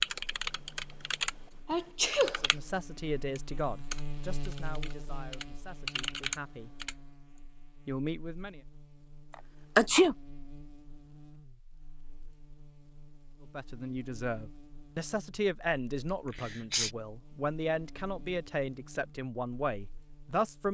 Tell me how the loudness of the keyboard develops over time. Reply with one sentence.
The loudness of the keyboard goes down, then up.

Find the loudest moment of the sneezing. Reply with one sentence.
The volume of the sneezing peaks at 10 seconds.